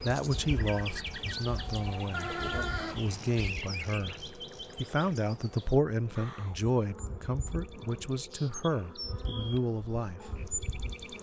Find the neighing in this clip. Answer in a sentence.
The neighing can be heard from 2.1 to 3.1 s.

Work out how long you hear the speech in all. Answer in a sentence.
The speech can be heard for 10 seconds in total.